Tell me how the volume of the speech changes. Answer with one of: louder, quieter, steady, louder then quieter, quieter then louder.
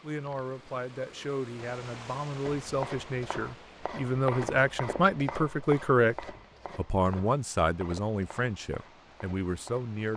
louder then quieter.